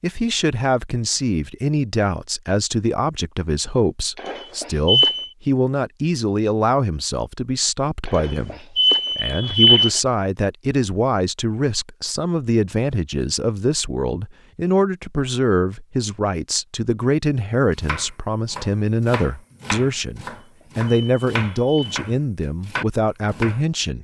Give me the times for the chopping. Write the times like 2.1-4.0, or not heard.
17.8-23.6.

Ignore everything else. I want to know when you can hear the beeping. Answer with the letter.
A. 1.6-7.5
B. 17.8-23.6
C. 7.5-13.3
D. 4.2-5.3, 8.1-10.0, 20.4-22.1
D.